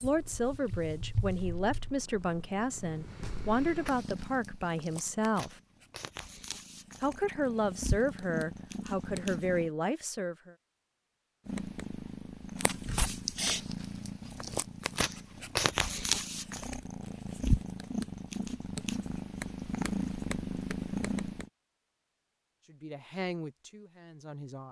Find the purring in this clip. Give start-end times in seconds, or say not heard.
0.0-9.7, 11.4-21.5.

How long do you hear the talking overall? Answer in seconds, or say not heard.
11 s.